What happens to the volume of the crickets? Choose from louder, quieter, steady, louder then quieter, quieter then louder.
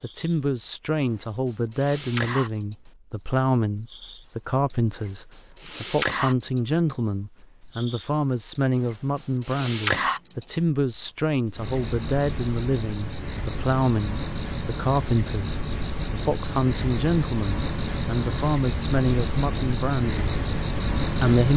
louder.